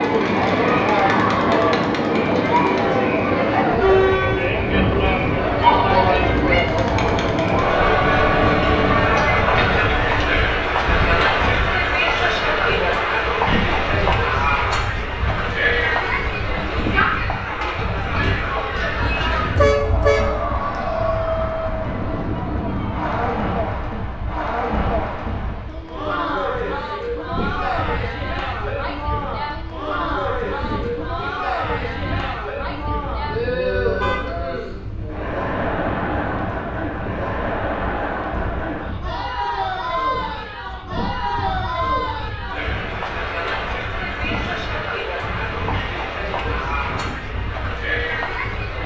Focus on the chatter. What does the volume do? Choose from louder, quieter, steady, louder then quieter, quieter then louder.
quieter.